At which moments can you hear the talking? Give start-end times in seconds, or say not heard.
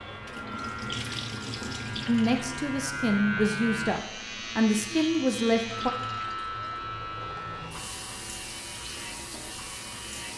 2.0-5.9.